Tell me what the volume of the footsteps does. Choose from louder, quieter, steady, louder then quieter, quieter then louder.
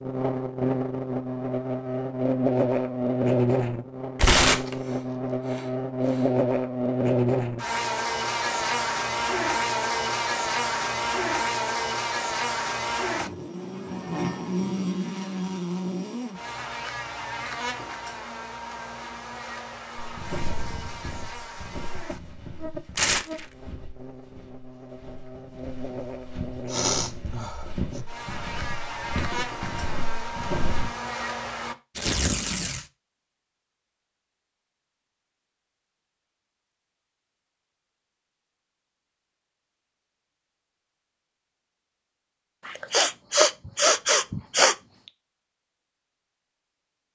quieter then louder.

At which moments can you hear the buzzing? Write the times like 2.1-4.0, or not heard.
0.0-31.8.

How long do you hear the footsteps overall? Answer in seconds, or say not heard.
11 s.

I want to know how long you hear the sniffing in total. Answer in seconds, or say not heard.
5 s.